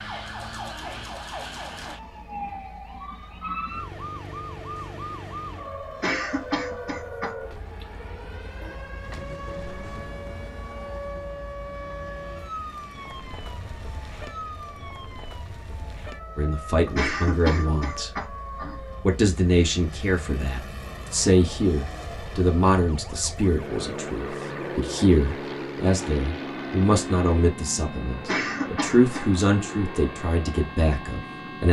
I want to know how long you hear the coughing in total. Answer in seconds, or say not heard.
4 s.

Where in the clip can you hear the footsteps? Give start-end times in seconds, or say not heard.
not heard.